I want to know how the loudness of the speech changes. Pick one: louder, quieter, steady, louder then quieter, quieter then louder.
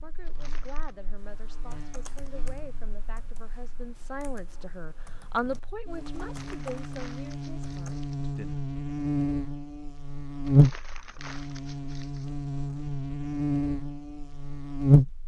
louder then quieter.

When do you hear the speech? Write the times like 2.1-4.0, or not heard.
0.0-8.6.